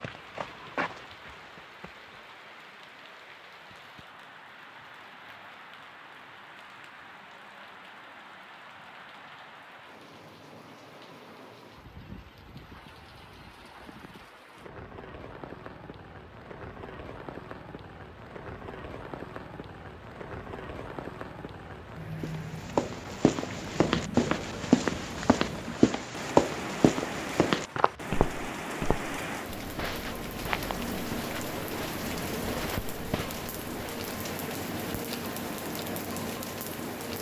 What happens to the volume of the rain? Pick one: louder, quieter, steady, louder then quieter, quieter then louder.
louder.